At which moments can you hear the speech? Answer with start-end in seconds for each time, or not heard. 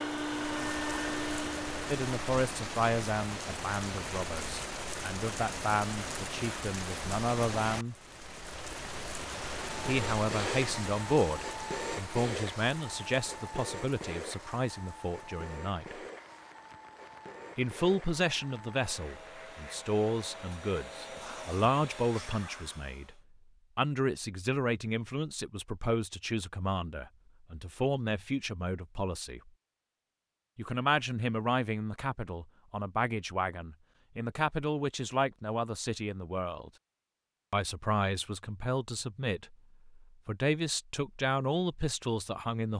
1.9-8.0, 9.8-16.0, 17.6-29.5, 30.6-36.7, 37.5-42.7.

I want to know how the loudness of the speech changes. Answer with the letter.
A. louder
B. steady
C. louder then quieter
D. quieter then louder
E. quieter
B.